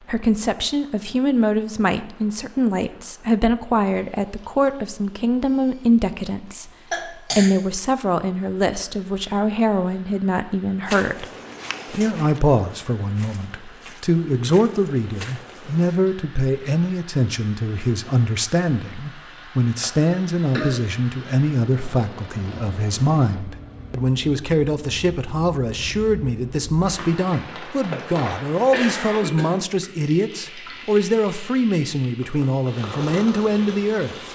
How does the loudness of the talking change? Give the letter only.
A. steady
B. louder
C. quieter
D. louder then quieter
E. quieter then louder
A.